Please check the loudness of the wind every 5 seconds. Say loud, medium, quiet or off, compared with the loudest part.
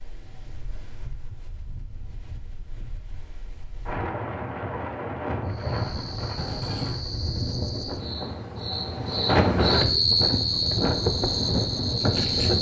medium, loud, loud.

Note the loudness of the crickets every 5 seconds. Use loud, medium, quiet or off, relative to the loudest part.
off, medium, loud.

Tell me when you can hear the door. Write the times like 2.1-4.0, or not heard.
6.3-7.0.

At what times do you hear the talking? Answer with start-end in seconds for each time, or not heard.
not heard.